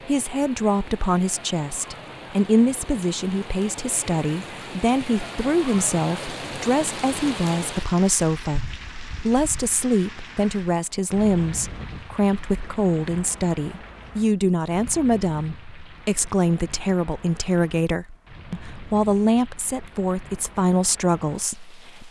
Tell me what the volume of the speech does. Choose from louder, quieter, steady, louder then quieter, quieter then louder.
steady.